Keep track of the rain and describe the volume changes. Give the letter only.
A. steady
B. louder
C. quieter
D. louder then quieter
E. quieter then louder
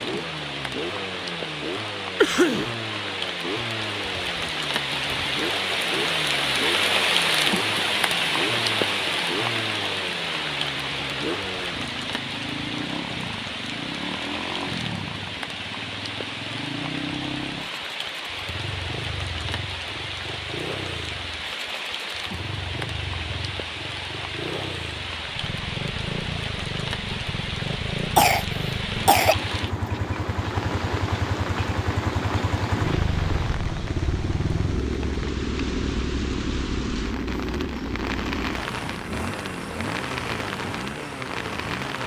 C.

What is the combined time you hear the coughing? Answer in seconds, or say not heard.
2 s.